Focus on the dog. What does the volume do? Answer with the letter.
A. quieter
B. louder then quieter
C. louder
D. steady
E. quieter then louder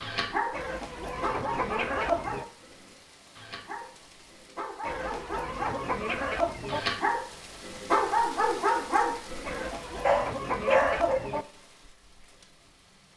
E.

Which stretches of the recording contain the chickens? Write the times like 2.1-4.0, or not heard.
0.5-2.5, 4.8-6.8, 9.4-11.4.